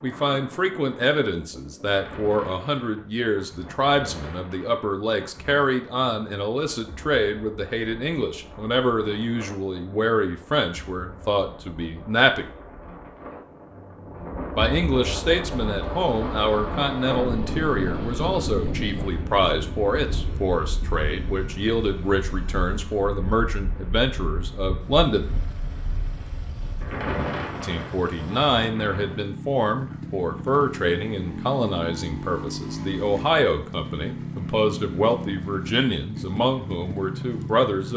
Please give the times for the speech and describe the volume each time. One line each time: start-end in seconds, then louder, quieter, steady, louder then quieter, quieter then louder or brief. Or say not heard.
0.0-12.4 steady
14.6-25.3 steady
27.6-37.9 steady.